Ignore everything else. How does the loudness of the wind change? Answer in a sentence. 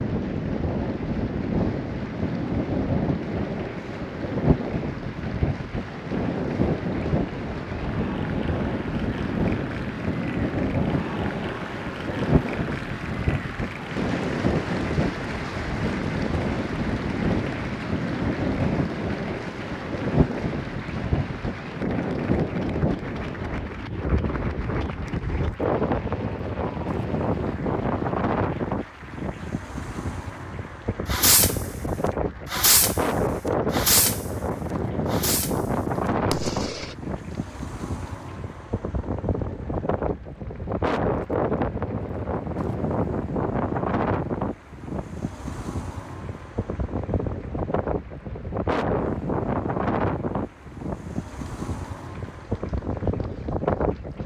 The loudness of the wind stays about the same.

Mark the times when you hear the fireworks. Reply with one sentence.
The fireworks can be heard from 31.1 to 31.6 s, from 32.5 to 33.0 s, from 33.7 to 34.3 s, from 35.0 to 35.7 s and from 36.3 to 37.0 s.